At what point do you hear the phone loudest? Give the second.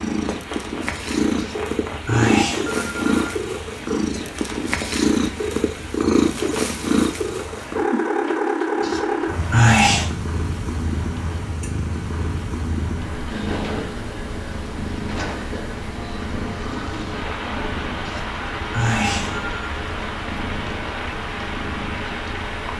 10 s.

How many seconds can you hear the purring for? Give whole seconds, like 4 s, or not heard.
23 s.